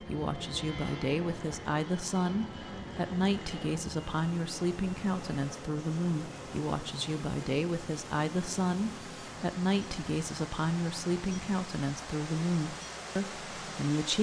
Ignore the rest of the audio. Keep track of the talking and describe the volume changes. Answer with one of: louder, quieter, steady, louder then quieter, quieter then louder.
steady.